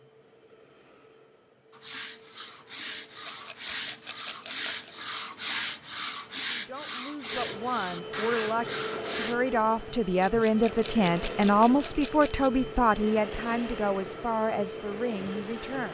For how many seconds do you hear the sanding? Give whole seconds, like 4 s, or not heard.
8 s.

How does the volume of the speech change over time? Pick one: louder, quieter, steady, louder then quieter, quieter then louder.
louder then quieter.